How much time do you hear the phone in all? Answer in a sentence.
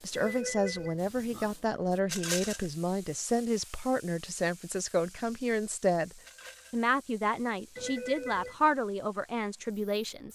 The phone can be heard for 2 seconds in total.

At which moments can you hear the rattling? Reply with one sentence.
You can hear the rattling from 2.0 to 2.7 s and from 6.2 to 6.8 s.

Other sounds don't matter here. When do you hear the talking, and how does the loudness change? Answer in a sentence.
The talking can be heard from 0.0 to 10.2 s, at a steady volume.